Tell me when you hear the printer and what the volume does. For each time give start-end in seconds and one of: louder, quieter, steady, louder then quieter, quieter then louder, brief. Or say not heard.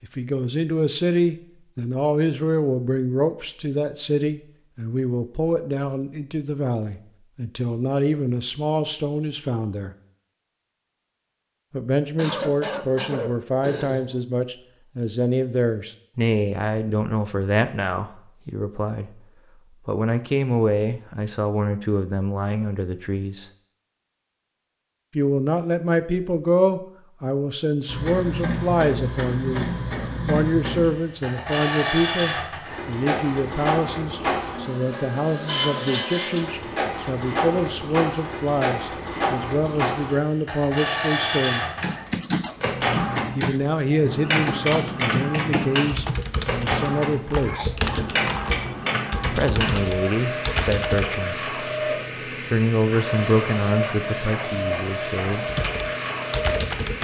27.9-56.9 steady.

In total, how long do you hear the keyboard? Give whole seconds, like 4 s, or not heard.
11 s.